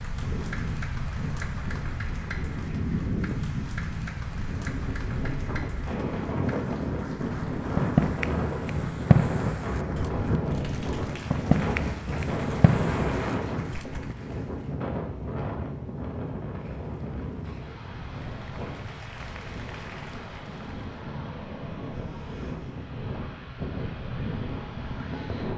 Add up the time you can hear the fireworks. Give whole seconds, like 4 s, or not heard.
7 s.